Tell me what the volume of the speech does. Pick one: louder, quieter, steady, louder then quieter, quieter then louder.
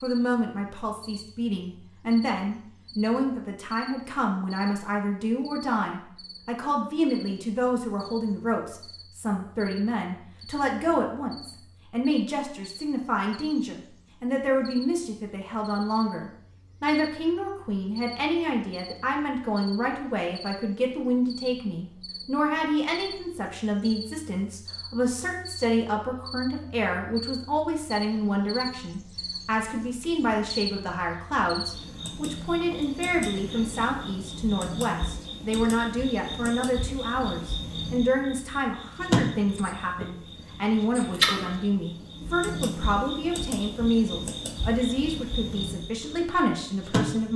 steady.